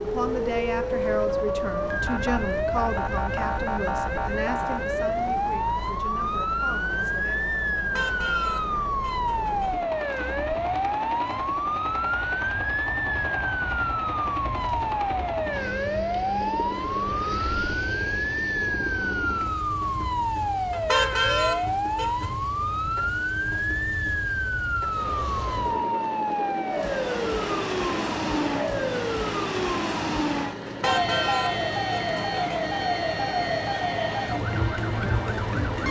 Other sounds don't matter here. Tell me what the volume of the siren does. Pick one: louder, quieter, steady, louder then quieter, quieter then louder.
steady.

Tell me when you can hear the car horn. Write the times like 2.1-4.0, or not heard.
7.8-9.8, 20.7-22.3, 30.6-32.4.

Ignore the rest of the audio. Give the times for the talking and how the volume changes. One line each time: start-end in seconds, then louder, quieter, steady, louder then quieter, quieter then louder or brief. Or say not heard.
0.0-7.5 quieter.